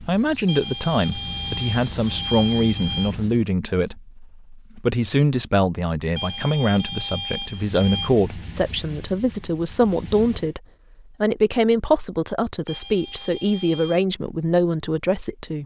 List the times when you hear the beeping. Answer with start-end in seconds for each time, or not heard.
0.5-3.1, 6.2-8.1, 12.7-14.0.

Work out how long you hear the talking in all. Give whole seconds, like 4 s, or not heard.
15 s.